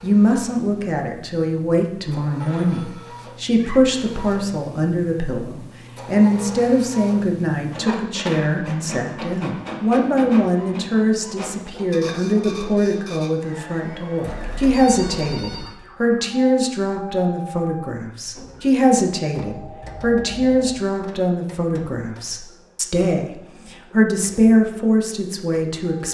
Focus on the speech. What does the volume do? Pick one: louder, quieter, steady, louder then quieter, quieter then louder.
steady.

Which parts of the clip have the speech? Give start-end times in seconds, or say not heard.
0.0-26.0.